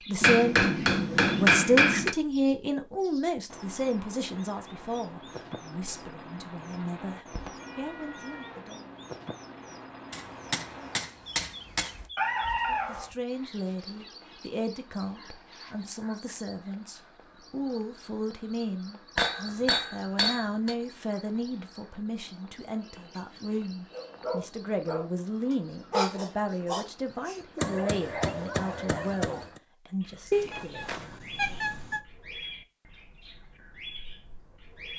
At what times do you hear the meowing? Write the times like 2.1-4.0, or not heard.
7.3-8.6, 12.2-13.1, 30.3-32.0.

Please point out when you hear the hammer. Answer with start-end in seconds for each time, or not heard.
0.2-2.1, 10.1-11.9, 19.1-20.8, 27.6-29.4.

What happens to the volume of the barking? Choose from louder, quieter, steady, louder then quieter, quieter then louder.
louder then quieter.